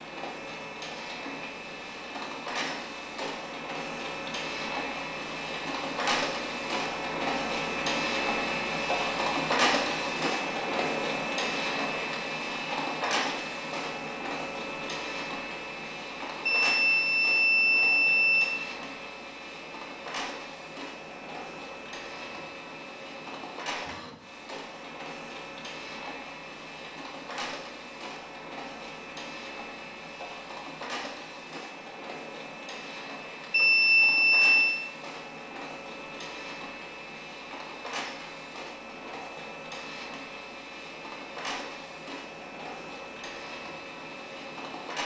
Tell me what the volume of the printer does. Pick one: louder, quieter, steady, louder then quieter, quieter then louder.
quieter.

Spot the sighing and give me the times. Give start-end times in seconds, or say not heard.
not heard.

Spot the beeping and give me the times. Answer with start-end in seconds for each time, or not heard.
16.4-18.4, 33.5-34.8.